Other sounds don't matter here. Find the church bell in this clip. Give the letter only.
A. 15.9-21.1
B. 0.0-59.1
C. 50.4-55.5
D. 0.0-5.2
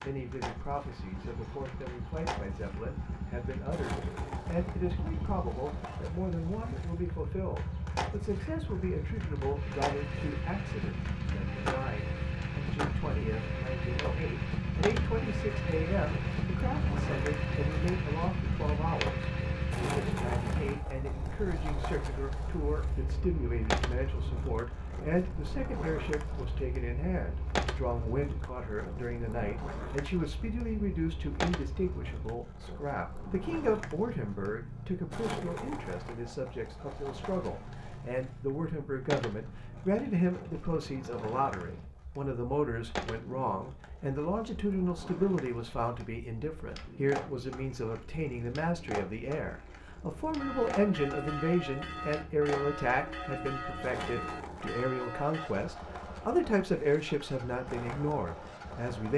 C.